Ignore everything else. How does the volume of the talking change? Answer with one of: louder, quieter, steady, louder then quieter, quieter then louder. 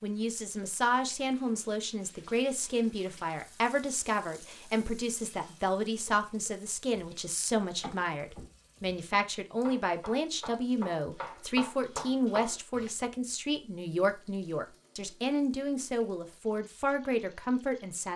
steady.